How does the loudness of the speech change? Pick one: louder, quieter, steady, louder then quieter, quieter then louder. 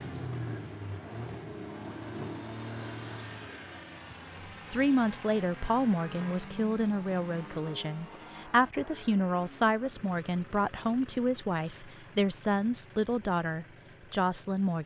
steady.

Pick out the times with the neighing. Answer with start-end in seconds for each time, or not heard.
not heard.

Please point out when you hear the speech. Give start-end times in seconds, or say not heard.
4.7-14.8.